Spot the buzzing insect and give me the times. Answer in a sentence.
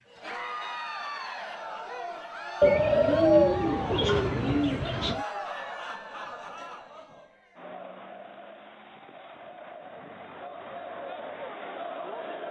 The buzzing insect can't be heard in this clip.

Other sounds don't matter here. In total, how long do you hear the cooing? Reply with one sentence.
The cooing can be heard for 3 seconds in total.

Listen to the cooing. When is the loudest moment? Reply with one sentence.
The loudest moment of the cooing is at 3 seconds.